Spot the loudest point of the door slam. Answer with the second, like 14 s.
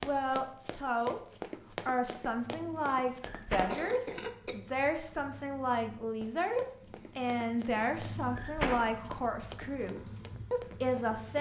9 s.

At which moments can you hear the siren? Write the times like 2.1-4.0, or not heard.
not heard.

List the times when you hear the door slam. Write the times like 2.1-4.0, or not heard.
3.2-3.9, 8.3-9.2.